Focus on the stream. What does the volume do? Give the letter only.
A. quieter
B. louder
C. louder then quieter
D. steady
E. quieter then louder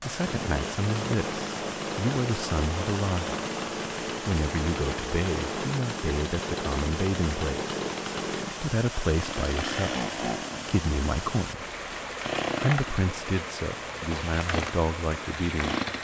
D.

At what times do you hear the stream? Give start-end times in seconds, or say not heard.
0.0-15.9.